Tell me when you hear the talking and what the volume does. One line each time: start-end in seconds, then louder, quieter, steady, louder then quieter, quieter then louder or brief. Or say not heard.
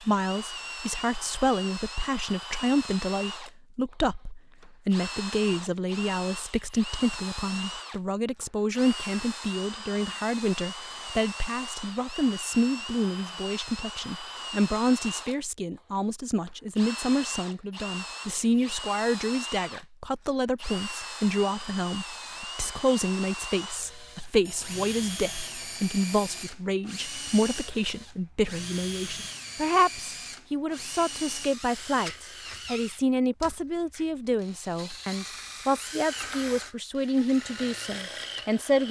0.1-38.8 steady.